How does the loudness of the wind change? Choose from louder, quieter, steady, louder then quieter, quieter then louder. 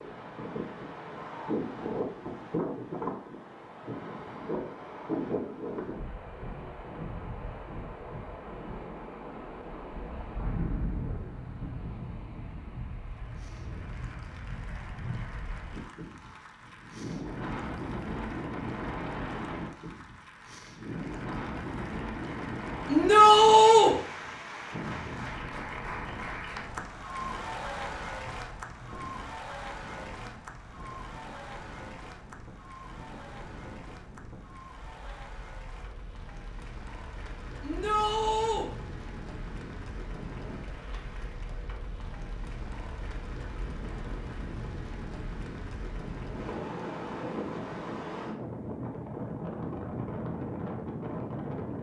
quieter then louder.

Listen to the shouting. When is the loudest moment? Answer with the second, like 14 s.
23 s.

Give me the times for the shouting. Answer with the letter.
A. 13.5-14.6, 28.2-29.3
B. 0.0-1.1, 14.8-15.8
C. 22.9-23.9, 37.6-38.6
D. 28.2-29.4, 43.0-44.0
C.